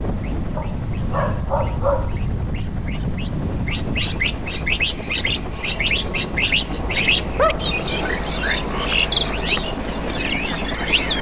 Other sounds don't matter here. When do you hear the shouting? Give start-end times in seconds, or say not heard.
not heard.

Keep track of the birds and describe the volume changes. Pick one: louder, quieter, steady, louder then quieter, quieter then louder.
louder.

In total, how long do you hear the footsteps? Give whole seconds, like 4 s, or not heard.
not heard.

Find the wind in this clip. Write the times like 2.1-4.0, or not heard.
0.0-8.2.